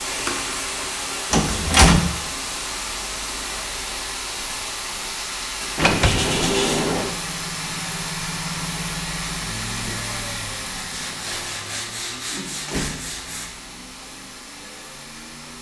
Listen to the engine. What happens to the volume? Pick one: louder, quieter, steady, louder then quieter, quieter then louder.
quieter.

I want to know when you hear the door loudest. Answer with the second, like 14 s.
2 s.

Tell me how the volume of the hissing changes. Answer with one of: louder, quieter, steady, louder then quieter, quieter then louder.
quieter.